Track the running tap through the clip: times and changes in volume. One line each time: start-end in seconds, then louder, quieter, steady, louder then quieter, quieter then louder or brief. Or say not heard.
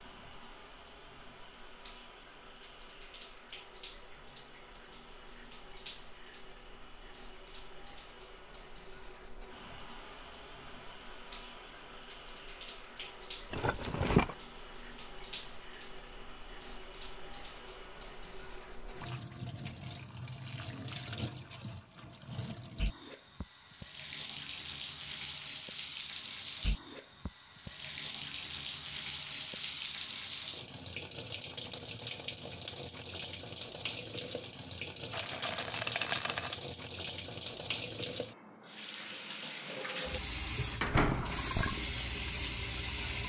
0.0-43.2 louder.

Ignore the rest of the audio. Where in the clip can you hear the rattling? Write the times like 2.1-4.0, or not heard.
13.5-14.3, 35.1-36.5.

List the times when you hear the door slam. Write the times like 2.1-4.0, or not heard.
40.8-41.8.